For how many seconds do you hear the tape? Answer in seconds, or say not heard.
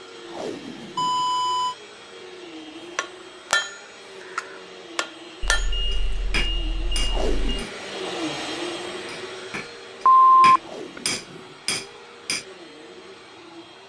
3 s.